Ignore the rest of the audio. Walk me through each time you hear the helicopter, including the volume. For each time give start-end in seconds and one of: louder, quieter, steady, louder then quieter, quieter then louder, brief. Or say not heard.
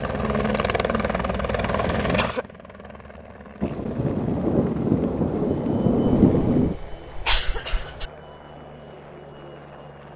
0.0-10.1 quieter.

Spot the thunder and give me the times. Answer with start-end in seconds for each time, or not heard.
3.6-6.8.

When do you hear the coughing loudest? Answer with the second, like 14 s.
7 s.